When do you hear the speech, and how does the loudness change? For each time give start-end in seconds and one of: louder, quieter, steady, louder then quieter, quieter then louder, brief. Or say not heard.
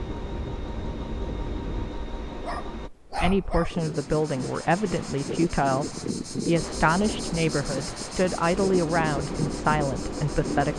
3.1-10.7 steady.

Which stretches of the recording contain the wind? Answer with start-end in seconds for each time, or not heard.
0.0-10.7.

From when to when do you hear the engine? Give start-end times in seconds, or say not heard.
0.0-2.9, 6.5-10.7.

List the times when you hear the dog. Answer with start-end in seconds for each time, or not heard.
2.4-3.8.